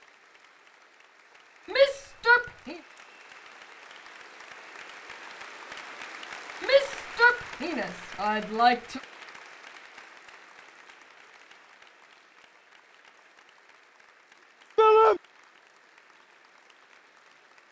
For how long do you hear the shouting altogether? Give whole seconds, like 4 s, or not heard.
4 s.